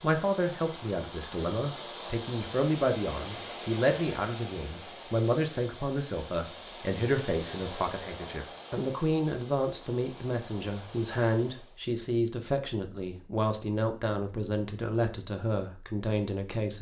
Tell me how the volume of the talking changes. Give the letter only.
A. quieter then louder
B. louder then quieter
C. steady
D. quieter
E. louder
C.